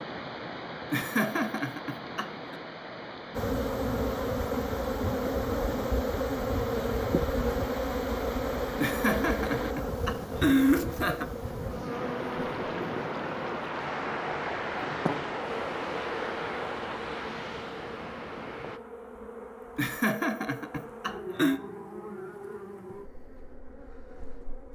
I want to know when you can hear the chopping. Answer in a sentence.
The chopping can't be heard in this clip.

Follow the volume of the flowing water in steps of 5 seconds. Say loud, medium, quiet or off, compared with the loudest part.
medium, medium, loud, loud, off.